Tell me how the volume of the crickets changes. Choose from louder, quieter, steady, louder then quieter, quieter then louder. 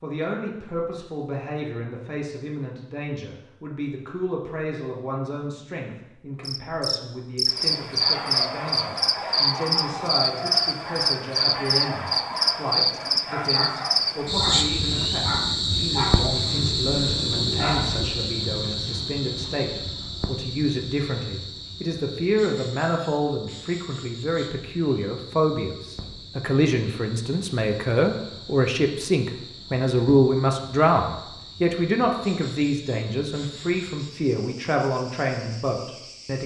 quieter.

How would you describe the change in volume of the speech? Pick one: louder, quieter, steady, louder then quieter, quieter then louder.
louder.